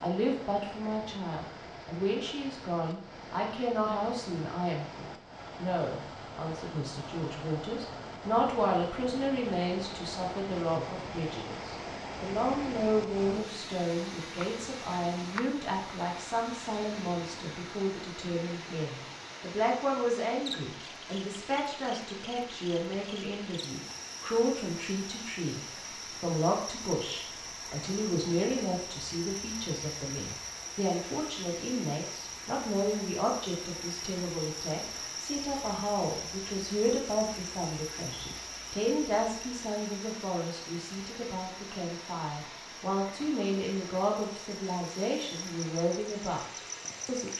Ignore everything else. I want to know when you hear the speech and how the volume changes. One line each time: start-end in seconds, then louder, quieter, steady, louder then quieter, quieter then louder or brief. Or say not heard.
0.0-47.3 steady.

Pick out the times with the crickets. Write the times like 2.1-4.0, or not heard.
20.3-47.3.